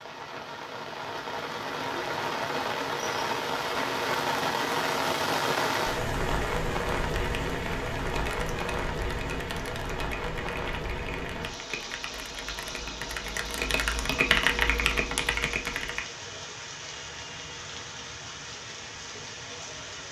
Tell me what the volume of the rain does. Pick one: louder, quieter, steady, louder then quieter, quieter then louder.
quieter.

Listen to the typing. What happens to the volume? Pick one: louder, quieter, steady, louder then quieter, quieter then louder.
louder.